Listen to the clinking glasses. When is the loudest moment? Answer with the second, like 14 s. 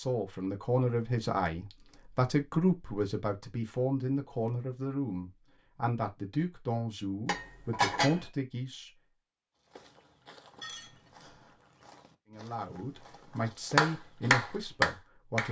8 s.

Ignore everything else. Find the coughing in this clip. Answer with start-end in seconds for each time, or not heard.
not heard.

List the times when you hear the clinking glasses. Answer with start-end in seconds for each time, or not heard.
1.5-1.9, 7.2-8.2, 10.6-11.5.